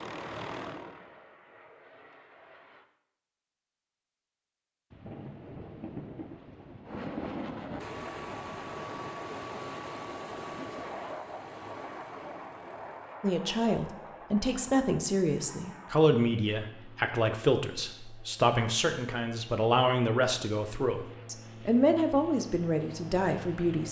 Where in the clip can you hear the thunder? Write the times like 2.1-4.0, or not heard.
4.9-8.4.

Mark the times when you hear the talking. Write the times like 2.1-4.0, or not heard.
13.2-23.8.